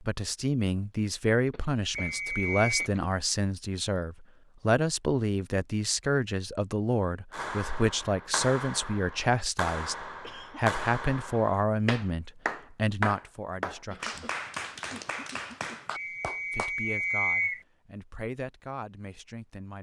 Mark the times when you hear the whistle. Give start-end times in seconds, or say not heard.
1.9-2.9, 15.9-17.6.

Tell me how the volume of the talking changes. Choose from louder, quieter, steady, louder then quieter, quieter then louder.
quieter.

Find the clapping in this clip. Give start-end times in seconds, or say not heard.
7.3-16.7.